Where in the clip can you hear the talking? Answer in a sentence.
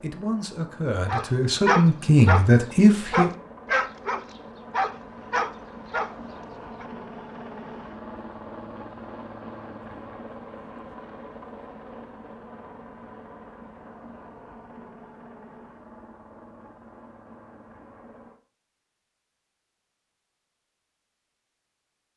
You can hear the talking from 0.0 to 3.3 s.